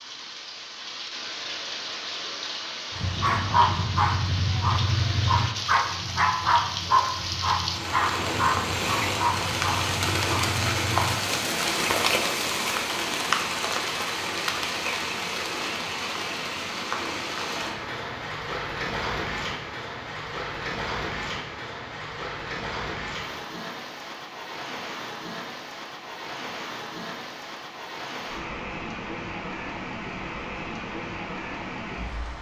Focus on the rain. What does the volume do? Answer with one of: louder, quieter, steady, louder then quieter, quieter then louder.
louder then quieter.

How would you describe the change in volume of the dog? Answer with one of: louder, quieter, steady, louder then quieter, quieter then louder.
quieter.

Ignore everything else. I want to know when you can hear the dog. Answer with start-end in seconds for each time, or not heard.
3.0-11.3.